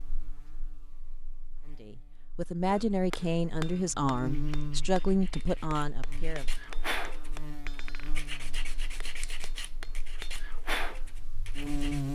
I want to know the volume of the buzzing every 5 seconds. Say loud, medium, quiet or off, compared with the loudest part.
medium, quiet, loud.